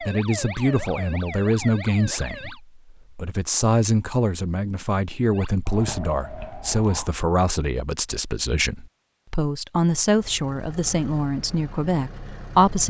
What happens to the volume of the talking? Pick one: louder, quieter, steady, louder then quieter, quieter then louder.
steady.